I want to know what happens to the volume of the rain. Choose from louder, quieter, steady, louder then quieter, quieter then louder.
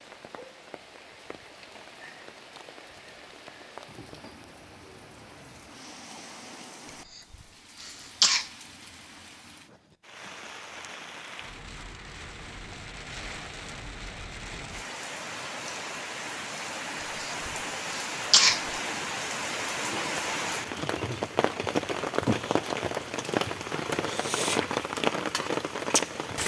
louder.